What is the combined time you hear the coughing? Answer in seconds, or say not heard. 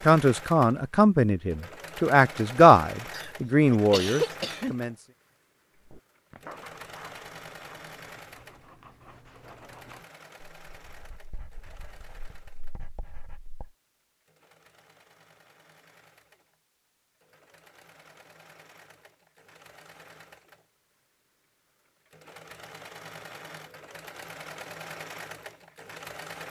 2 s.